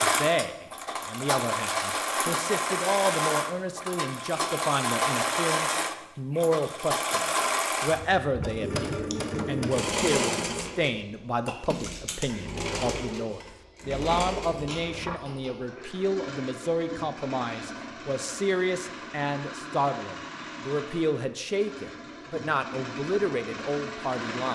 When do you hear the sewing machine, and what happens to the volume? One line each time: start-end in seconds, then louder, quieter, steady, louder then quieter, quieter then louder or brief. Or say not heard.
0.0-24.5 quieter.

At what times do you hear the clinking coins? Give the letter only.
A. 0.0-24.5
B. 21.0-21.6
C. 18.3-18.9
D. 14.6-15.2
D.